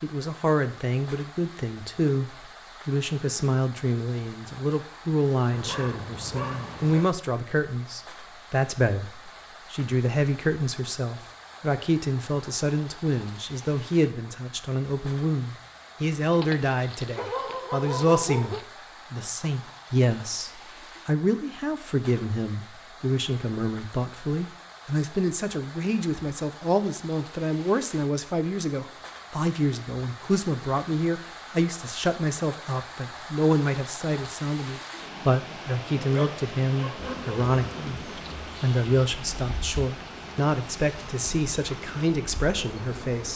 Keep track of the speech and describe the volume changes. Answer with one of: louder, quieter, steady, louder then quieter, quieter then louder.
steady.